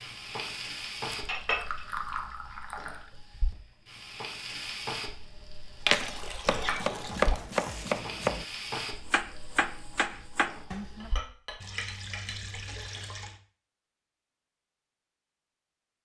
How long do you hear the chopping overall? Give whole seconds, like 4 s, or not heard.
5 s.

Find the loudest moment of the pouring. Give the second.
2 s.